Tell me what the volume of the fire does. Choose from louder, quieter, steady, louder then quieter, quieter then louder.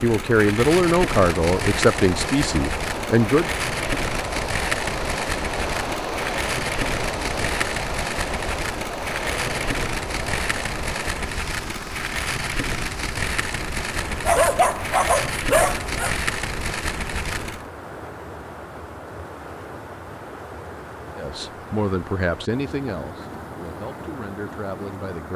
steady.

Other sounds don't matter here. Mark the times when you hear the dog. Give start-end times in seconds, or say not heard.
14.2-16.1.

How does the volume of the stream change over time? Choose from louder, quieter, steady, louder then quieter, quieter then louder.
quieter.